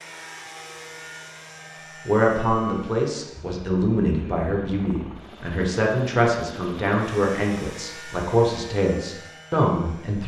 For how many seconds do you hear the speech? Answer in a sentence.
You can hear the speech for 8 seconds altogether.